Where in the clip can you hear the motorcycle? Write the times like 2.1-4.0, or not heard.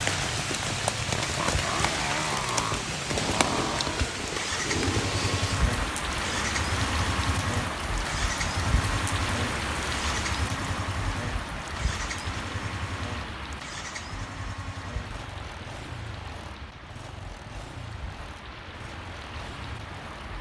0.0-20.3.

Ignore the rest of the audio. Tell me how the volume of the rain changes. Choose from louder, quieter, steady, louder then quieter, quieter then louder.
quieter.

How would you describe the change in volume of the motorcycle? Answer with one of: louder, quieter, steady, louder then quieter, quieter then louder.
quieter.